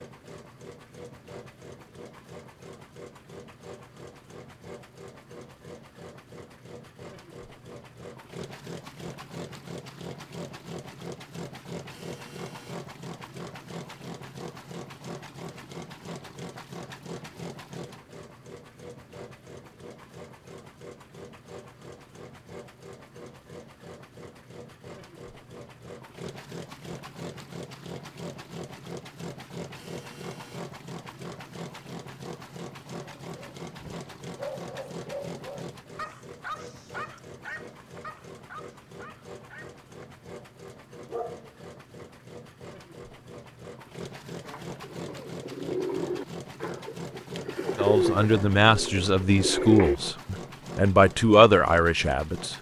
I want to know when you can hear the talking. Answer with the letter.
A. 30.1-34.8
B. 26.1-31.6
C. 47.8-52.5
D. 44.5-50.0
C.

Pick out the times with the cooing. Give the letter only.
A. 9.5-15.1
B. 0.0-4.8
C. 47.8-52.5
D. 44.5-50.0
D.